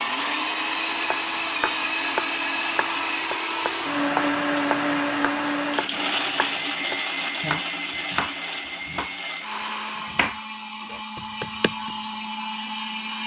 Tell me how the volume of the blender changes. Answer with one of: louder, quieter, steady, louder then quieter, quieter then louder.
quieter.